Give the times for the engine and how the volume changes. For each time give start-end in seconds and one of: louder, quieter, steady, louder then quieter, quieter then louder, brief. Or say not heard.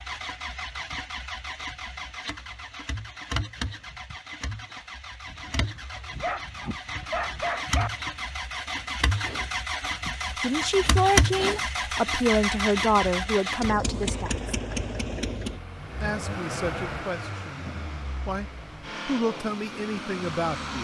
0.0-20.7 louder then quieter.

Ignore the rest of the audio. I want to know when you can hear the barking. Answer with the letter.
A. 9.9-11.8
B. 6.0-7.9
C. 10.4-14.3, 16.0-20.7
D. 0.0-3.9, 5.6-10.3
B.